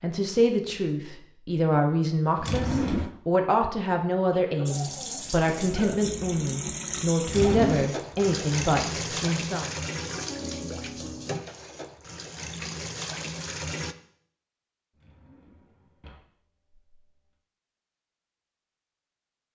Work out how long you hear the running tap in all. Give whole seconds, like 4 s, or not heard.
9 s.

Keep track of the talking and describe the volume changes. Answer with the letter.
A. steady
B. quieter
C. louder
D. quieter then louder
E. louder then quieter
A.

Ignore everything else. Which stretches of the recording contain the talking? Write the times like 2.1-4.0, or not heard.
0.0-9.7.